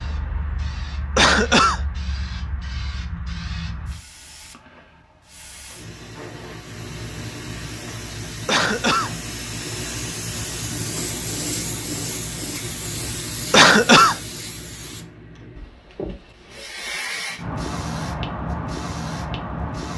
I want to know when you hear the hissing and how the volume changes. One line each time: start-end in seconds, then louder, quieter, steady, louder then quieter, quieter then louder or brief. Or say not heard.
0.0-19.9 louder.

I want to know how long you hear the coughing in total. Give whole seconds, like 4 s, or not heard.
2 s.